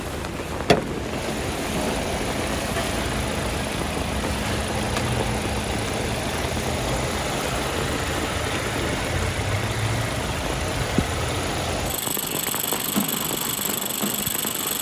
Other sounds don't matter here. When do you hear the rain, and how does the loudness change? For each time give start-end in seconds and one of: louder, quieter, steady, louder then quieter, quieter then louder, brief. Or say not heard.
0.0-14.7 steady.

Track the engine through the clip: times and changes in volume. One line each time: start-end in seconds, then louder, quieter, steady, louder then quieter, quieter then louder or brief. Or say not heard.
0.0-14.7 steady.